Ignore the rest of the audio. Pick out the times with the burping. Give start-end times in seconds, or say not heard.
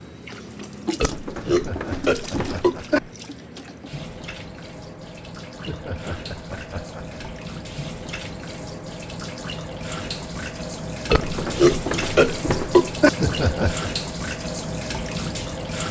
1.0-3.0, 11.1-13.1.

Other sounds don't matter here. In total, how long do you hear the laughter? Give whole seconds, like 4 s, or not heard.
4 s.